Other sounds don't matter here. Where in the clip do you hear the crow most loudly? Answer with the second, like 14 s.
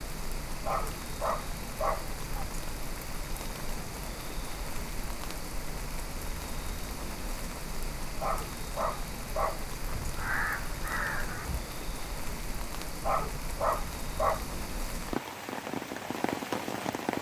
10 s.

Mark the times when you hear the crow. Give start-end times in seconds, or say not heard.
9.9-11.6.